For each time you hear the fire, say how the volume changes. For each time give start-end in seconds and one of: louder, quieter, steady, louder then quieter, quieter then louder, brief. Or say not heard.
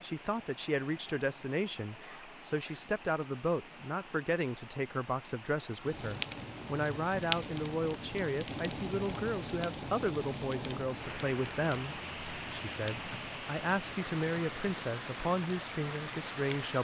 5.8-16.7 quieter.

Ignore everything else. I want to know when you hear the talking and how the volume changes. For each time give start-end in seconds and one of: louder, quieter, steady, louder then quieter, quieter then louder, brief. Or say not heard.
0.0-16.7 steady.